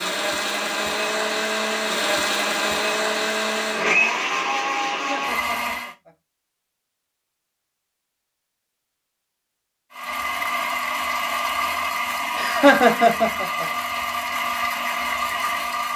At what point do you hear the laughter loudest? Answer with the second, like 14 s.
13 s.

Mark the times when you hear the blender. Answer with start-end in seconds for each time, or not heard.
0.0-6.0, 9.9-15.9.